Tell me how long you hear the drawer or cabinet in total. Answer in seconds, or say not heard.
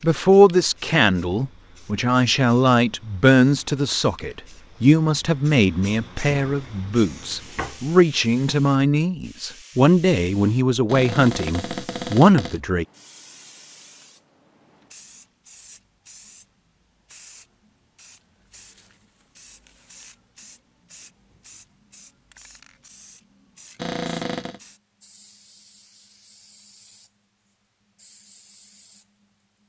4 s.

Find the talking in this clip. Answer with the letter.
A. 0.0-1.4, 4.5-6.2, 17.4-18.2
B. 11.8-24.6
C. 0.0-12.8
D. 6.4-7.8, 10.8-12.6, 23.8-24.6
C.